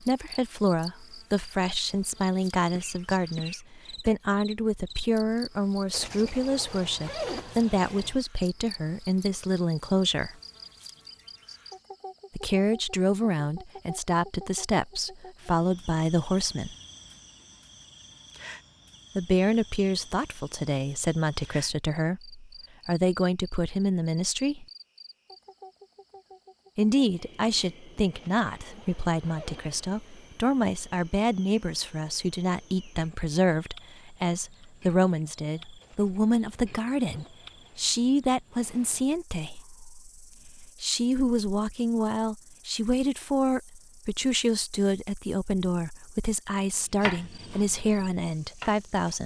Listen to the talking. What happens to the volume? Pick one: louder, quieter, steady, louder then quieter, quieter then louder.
steady.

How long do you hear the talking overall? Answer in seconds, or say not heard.
43 s.